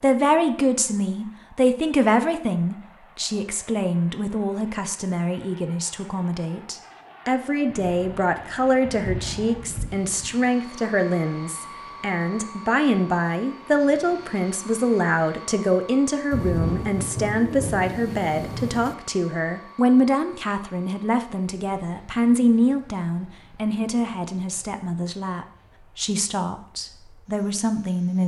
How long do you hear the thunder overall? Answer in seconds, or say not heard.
5 s.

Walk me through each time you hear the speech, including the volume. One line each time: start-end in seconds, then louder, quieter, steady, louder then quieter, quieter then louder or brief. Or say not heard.
0.0-28.2 steady.